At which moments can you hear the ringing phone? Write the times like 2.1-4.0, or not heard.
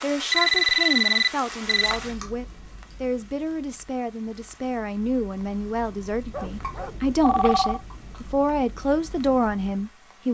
0.3-2.0, 6.3-7.8.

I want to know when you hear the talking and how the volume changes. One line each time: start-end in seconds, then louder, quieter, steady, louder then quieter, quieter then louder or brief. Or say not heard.
0.0-10.2 louder.